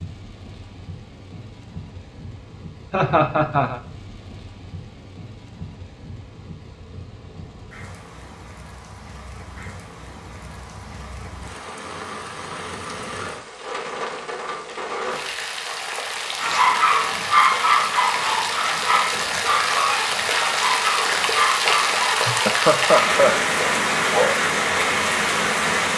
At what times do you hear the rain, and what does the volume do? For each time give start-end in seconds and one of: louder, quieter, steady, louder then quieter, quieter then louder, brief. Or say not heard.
0.0-25.9 louder.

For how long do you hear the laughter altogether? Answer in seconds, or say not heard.
2 s.